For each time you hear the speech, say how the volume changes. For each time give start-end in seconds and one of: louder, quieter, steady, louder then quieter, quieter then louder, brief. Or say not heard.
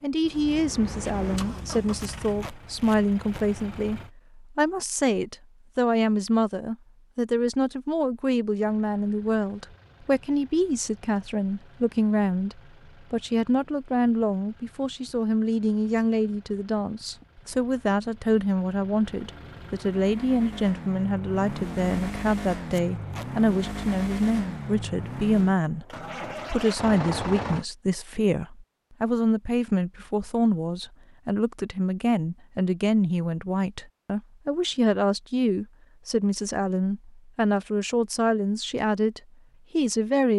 0.0-40.3 steady.